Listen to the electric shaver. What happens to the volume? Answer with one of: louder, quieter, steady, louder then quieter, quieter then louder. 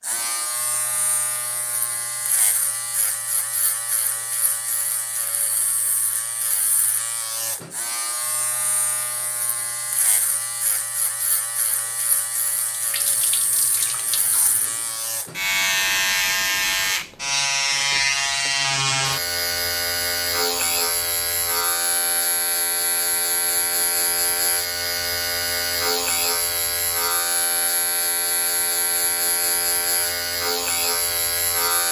louder.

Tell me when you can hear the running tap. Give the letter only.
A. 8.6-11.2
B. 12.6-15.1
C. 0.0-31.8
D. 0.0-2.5
B.